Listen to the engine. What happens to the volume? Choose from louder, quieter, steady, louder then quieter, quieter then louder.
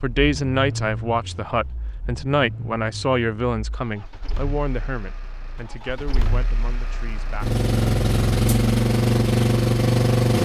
quieter then louder.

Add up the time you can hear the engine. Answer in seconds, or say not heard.
10 s.